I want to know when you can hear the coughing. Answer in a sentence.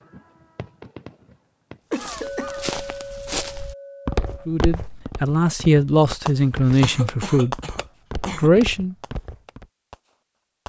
The coughing can be heard from 1.9 to 2.7 s and from 6.8 to 8.5 s.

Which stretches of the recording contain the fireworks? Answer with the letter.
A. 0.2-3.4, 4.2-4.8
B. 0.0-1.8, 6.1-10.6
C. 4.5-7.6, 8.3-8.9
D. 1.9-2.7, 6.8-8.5
B.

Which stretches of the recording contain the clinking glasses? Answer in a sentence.
The clinking glasses can be heard from 2.2 to 4.5 s.